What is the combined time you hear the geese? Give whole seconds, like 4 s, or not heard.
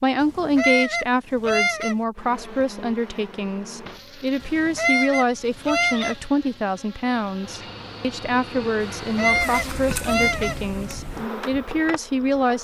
5 s.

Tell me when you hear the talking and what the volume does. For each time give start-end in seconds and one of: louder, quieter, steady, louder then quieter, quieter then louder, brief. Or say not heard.
0.0-12.5 steady.